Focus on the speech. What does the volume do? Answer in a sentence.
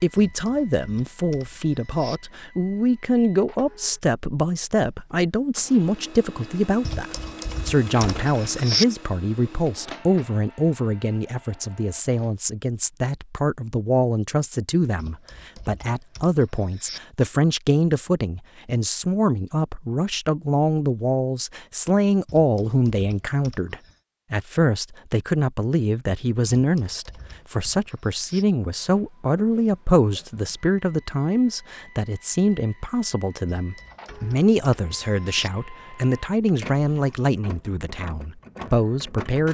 The loudness of the speech stays about the same.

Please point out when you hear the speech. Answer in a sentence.
The speech can be heard from 0.0 to 39.5 s.